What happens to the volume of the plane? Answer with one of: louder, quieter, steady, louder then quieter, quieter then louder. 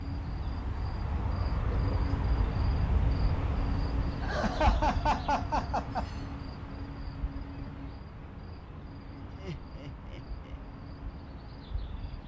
quieter.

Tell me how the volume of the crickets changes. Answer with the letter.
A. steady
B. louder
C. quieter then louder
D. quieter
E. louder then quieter
D.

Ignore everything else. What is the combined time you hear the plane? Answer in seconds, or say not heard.
12 s.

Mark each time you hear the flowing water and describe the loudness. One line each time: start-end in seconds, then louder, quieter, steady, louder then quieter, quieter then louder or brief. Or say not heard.
not heard.